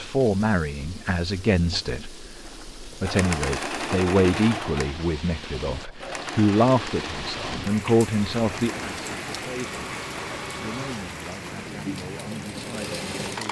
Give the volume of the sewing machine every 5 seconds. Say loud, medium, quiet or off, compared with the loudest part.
loud, medium, medium.